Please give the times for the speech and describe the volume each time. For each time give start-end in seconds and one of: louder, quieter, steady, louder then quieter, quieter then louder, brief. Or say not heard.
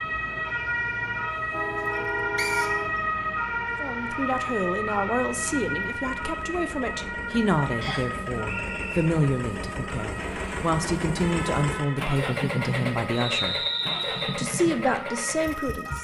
3.8-13.6 steady
14.3-15.9 brief.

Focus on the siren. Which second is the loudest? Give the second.
3 s.